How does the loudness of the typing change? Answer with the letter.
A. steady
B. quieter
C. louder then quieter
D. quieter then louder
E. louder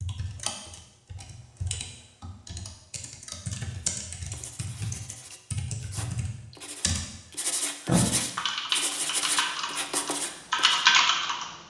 E.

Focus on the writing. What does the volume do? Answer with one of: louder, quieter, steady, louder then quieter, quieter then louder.
louder.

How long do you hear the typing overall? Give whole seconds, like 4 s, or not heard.
11 s.